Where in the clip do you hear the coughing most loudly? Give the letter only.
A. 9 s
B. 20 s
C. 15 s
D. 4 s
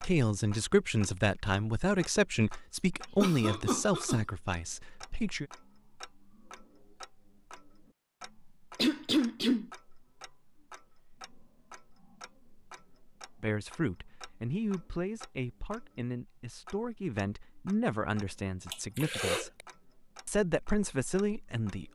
A.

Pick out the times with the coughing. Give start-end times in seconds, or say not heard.
3.2-4.2, 8.8-9.7, 18.7-19.6.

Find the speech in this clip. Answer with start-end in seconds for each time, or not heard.
0.0-5.5, 13.4-19.6, 20.2-21.9.